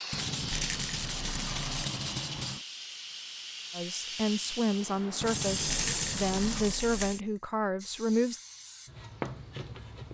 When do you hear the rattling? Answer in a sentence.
You can hear the rattling from 0.5 to 1.9 s and from 5.7 to 7.2 s.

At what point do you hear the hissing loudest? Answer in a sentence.
The loudest moment of the hissing is at 6 seconds.